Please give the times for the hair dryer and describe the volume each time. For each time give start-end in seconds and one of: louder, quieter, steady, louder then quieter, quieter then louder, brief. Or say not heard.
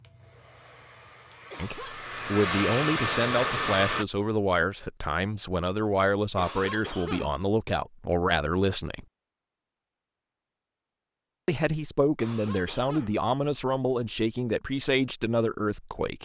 0.0-4.0 louder.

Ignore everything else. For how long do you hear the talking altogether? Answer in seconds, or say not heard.
12 s.